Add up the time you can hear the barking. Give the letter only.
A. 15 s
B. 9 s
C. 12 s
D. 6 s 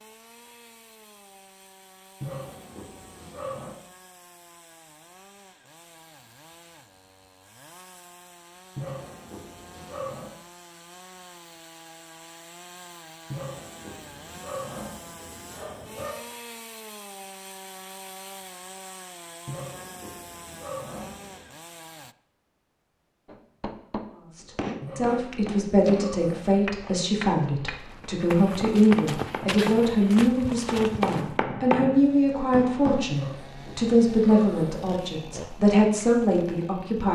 C.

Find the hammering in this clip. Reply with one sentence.
You can hear the hammering from 23.2 to 33.0 s.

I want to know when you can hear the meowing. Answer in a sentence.
You can't hear the meowing here.